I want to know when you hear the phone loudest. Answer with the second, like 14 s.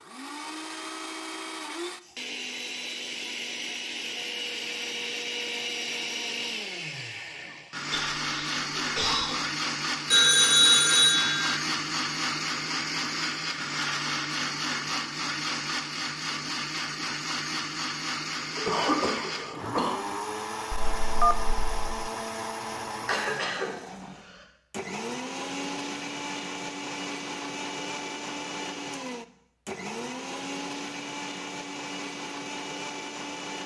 11 s.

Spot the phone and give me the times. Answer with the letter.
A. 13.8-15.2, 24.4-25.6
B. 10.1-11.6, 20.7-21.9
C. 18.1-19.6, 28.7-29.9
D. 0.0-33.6
B.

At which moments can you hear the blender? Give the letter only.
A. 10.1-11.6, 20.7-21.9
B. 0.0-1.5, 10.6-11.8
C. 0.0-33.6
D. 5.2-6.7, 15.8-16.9
C.